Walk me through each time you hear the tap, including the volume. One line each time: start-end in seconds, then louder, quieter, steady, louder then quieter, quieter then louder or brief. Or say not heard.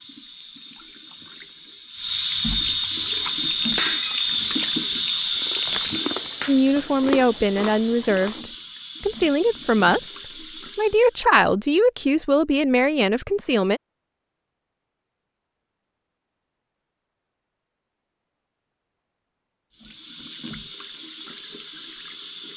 0.0-11.2 louder then quieter
19.8-22.5 brief.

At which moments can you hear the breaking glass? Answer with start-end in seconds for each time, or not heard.
3.8-4.3.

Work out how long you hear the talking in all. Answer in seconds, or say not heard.
7 s.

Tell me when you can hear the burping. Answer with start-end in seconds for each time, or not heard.
not heard.